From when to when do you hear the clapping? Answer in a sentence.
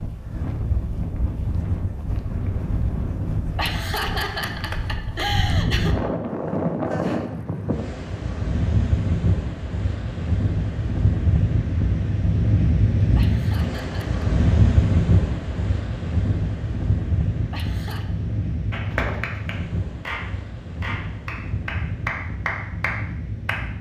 The clapping can be heard from 18.7 to 23.6 s.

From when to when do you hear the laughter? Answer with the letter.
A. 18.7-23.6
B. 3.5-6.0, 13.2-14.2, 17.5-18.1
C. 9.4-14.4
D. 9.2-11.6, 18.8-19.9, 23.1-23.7
B.